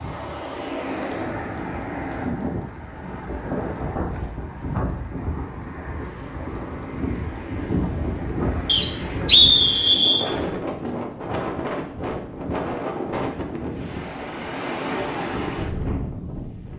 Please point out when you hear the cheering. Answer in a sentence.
The cheering can't be heard in this clip.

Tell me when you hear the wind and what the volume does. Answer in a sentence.
You can hear the wind from 0.0 to 16.7 s, at a steady volume.